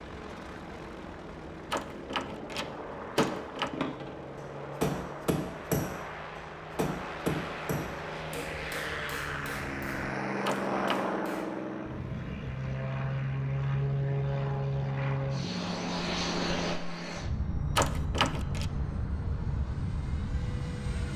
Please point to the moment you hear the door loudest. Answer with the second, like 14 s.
18 s.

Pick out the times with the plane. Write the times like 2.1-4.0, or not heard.
0.0-21.1.